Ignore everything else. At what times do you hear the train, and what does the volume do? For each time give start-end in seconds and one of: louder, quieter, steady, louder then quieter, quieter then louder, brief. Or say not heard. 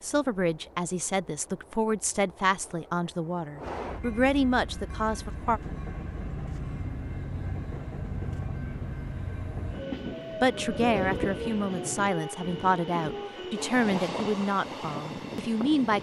0.0-15.9 louder.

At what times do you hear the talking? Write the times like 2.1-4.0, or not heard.
0.0-5.6, 10.3-15.9.